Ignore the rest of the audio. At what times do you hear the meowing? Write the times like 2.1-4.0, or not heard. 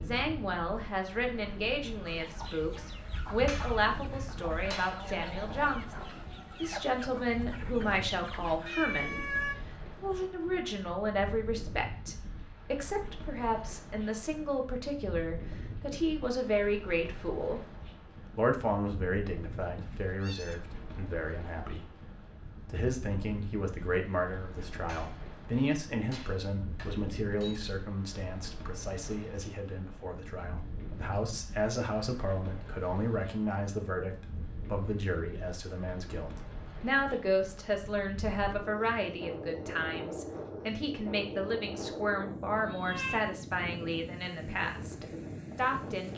8.7-9.6, 19.8-20.6, 42.5-43.2.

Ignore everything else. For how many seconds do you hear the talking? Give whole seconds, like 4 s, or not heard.
45 s.